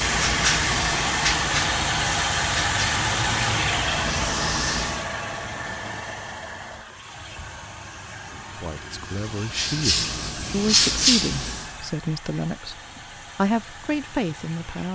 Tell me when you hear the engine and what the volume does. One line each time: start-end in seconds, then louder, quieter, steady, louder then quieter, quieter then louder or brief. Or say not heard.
0.0-14.8 quieter.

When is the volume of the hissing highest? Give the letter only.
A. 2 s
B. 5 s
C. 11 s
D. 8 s
C.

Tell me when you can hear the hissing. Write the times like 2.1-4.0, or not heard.
0.0-5.1, 9.1-11.8.